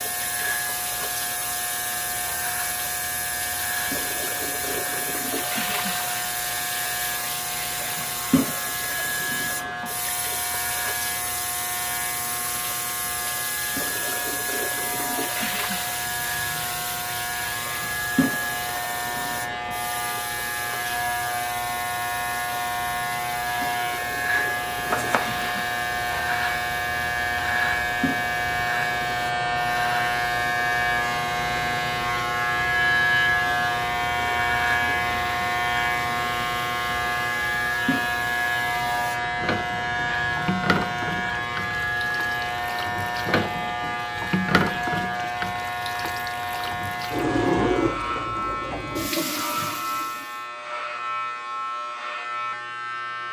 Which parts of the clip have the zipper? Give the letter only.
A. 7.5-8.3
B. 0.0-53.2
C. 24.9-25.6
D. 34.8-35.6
C.